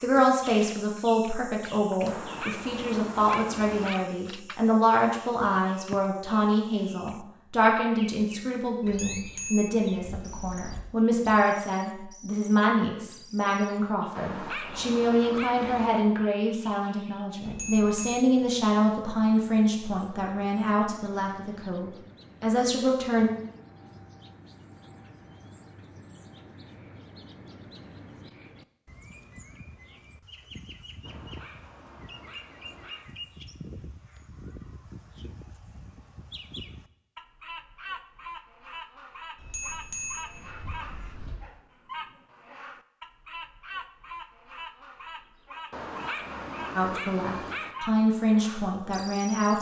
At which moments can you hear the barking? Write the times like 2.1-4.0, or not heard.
2.0-4.0, 14.2-16.0, 31.0-33.0, 45.7-47.8.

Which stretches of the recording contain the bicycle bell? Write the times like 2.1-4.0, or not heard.
8.8-10.8, 17.4-18.2, 39.4-41.4.